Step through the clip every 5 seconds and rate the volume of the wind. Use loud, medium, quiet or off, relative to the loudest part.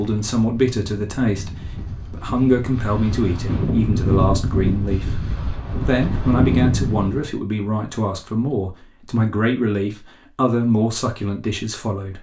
loud, loud, off.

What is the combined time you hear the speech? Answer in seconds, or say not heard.
12 s.